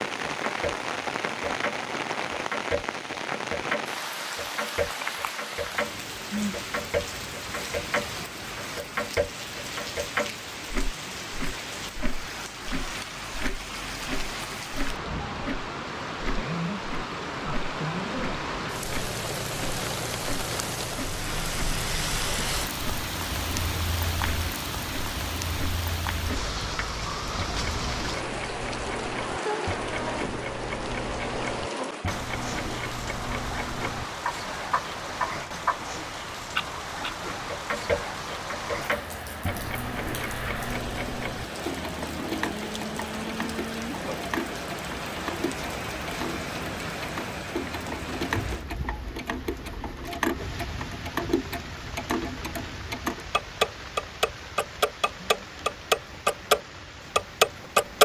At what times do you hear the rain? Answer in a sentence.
The rain can be heard from 0.0 to 58.0 s.